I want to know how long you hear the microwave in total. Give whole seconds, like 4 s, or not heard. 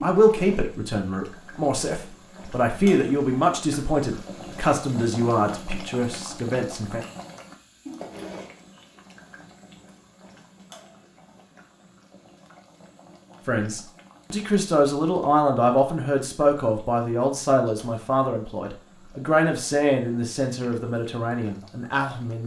not heard.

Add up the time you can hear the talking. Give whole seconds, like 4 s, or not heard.
16 s.